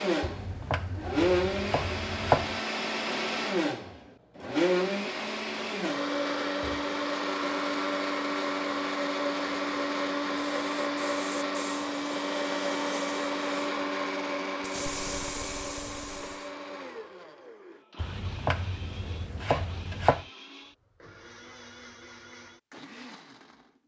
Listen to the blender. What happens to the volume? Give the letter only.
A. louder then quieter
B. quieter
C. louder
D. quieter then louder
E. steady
B.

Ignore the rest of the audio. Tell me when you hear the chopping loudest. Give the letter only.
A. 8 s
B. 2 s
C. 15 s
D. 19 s
B.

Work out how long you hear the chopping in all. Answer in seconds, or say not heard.
5 s.